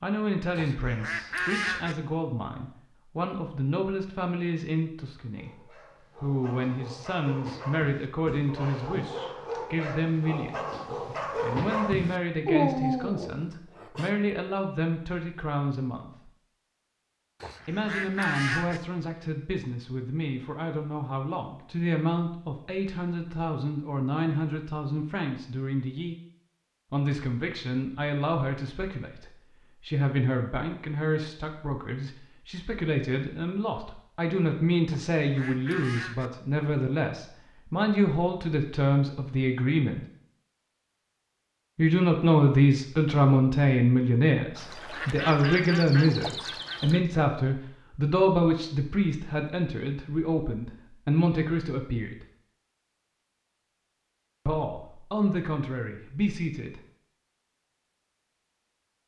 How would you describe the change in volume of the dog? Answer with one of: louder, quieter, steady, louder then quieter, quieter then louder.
louder.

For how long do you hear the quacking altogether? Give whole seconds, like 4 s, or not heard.
7 s.